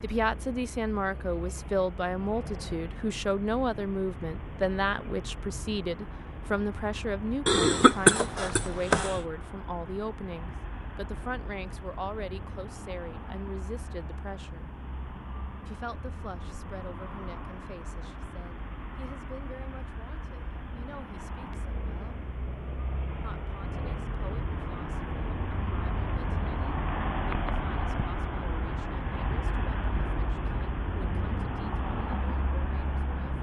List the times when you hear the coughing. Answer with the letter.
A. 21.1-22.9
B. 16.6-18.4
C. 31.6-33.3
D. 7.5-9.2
D.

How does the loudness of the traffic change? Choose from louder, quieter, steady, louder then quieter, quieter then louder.
louder.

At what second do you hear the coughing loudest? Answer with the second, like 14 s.
8 s.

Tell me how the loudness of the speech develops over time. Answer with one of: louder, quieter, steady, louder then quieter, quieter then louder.
quieter.